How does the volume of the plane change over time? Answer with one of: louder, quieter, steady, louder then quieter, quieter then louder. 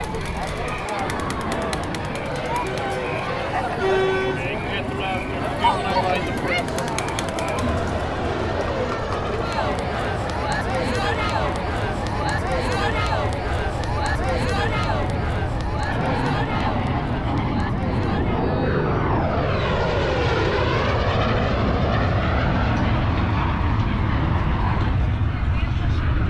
louder.